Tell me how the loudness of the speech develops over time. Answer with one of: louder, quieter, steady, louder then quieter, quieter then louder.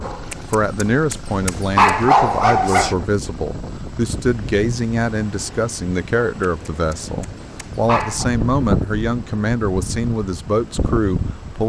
steady.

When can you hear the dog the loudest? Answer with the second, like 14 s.
2 s.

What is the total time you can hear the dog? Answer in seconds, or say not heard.
5 s.